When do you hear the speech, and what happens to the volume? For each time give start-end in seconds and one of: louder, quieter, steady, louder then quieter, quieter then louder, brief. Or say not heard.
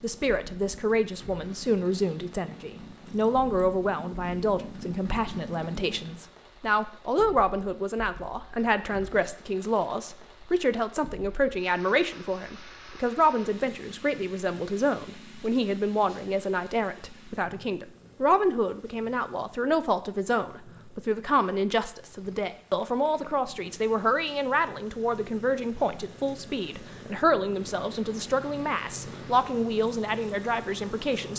0.0-31.3 steady.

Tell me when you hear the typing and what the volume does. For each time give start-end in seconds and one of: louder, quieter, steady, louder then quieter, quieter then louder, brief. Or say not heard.
not heard.